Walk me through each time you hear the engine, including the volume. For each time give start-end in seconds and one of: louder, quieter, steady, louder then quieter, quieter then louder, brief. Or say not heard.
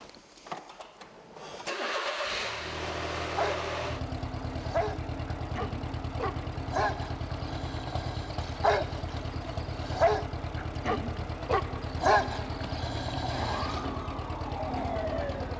0.0-15.5 steady.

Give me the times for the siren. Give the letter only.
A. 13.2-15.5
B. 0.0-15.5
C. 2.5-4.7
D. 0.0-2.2
A.